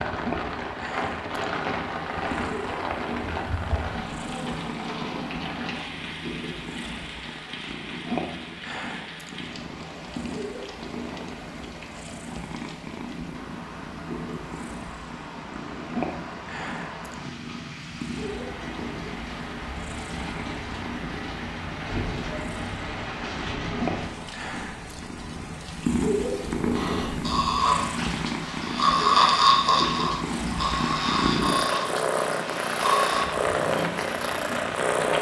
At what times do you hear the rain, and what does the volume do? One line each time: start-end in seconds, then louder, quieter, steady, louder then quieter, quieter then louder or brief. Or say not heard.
0.0-35.1 quieter then louder.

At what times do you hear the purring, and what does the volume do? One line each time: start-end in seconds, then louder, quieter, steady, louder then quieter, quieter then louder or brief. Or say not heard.
0.0-35.1 louder.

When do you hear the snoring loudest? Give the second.
29 s.